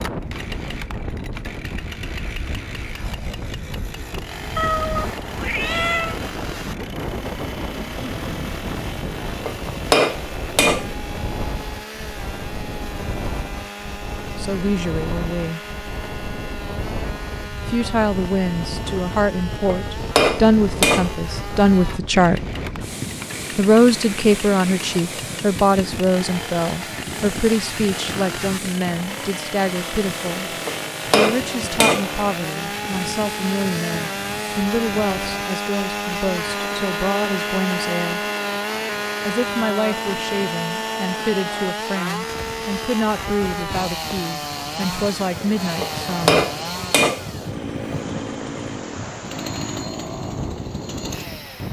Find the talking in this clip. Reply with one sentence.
You can hear the talking from 14.3 to 15.6 s, from 17.6 to 22.4 s, from 23.6 to 38.2 s and from 39.2 to 46.5 s.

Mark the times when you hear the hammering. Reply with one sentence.
You can hear the hammering from 9.2 to 10.9 s, from 19.2 to 21.3 s, from 30.4 to 32.2 s and from 45.6 to 47.5 s.